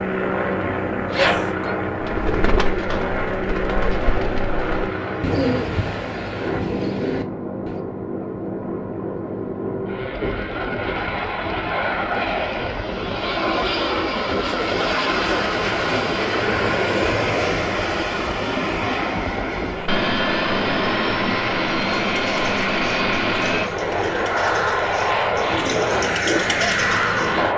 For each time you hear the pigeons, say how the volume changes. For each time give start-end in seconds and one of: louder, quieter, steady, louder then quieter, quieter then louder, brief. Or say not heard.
2.0-7.8 steady
21.8-27.4 louder.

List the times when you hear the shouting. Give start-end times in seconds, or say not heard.
1.1-1.8.